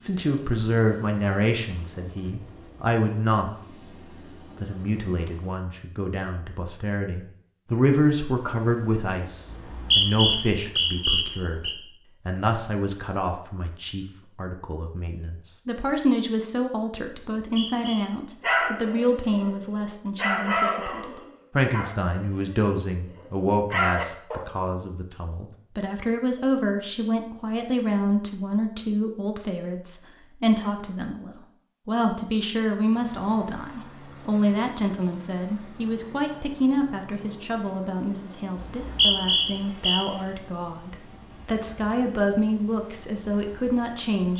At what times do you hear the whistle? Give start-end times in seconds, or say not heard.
9.5-11.8, 17.4-18.0, 38.6-40.0.